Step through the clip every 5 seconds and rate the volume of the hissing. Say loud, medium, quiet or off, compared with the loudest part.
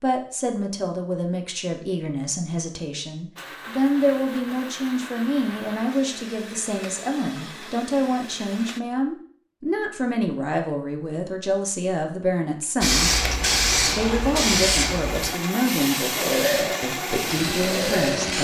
off, off, loud, medium.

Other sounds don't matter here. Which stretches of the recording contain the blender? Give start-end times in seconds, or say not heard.
3.4-8.8, 13.0-18.3.